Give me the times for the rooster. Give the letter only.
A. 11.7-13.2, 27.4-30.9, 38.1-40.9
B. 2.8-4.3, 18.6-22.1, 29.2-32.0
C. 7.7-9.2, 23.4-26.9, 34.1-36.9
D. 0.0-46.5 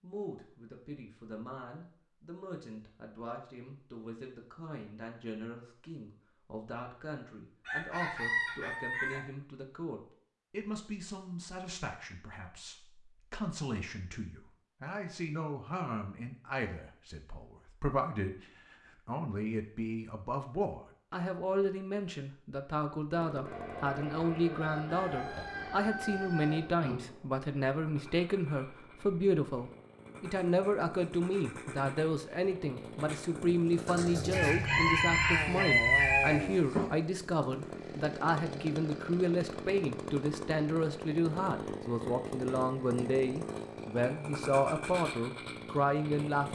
C.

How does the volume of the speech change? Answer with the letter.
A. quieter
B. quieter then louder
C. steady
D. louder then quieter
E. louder
E.